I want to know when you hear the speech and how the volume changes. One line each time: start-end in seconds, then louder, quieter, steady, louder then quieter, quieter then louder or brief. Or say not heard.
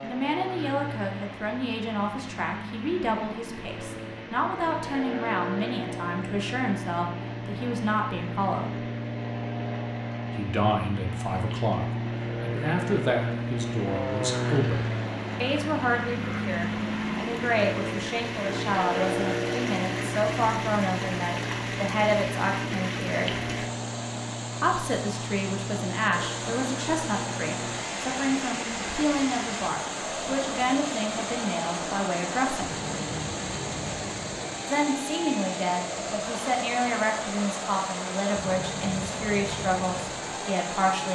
0.0-8.8 steady
10.3-23.4 steady
24.6-32.8 steady
34.6-41.0 steady.